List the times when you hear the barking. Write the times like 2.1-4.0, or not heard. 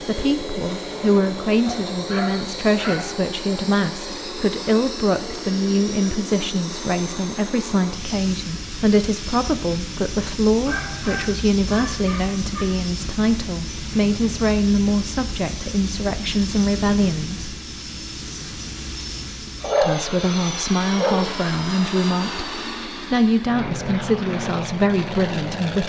1.6-3.1, 10.7-12.7, 19.6-21.4.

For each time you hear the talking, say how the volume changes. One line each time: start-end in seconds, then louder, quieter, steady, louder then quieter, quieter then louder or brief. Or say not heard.
0.0-17.4 steady
19.8-25.8 steady.